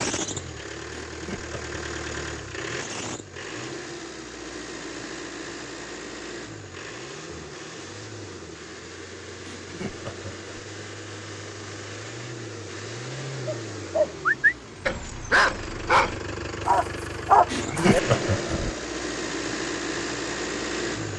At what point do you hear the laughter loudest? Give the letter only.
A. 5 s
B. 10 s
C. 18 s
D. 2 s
C.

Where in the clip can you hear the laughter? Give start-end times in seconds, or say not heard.
1.1-1.8, 9.4-10.6, 17.4-18.8.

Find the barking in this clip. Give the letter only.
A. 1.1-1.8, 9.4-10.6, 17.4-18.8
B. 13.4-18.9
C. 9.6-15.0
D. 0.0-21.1
B.